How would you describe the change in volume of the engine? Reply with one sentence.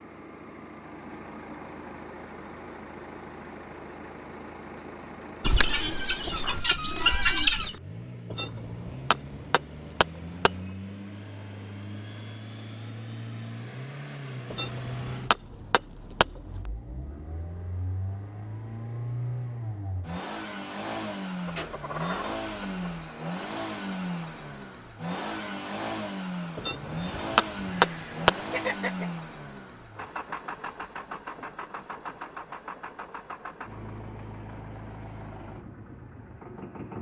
The loudness of the engine goes up, then down.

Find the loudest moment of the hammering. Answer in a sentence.
The volume of the hammering peaks at 28 seconds.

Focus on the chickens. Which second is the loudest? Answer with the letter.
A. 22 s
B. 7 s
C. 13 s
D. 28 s
B.